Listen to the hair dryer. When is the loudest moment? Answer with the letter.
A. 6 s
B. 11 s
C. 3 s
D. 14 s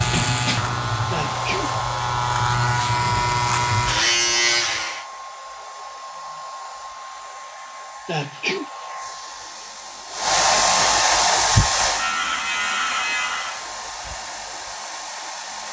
B.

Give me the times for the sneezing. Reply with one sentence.
The sneezing can be heard from 1.1 to 1.8 s and from 8.1 to 8.7 s.